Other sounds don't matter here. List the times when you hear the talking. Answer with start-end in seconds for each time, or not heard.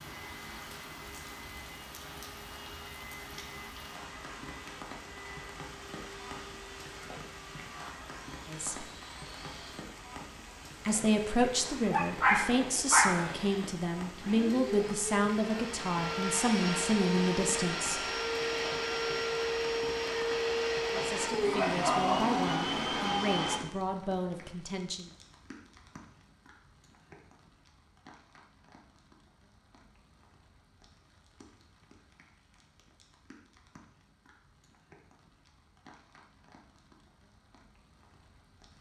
8.4-8.8, 10.8-18.0, 20.9-25.1.